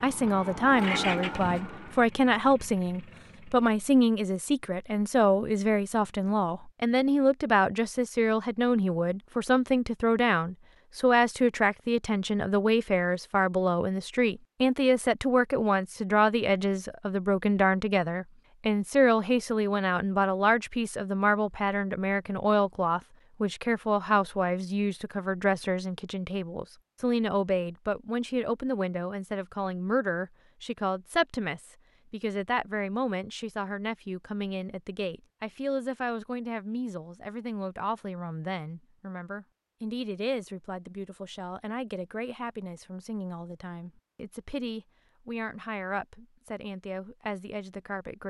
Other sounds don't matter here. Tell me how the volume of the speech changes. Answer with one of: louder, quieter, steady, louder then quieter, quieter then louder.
quieter.